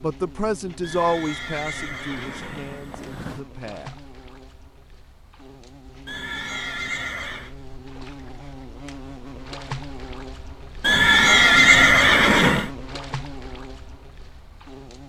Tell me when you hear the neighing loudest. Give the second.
12 s.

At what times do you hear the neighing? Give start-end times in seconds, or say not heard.
0.8-3.5, 6.0-7.5, 10.8-12.7.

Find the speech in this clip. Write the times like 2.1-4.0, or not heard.
0.0-4.0.